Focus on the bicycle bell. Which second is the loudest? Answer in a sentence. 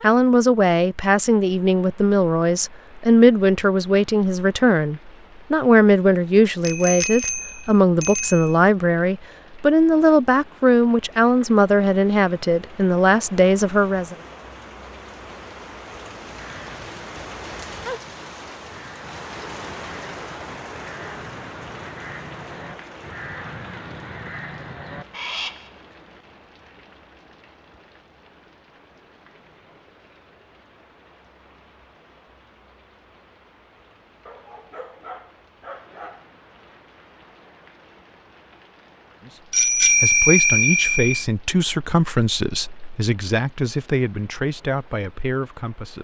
The volume of the bicycle bell peaks at 40 seconds.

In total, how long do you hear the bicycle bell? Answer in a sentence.
The bicycle bell can be heard for 4 seconds in total.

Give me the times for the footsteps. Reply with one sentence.
The footsteps can't be heard in this clip.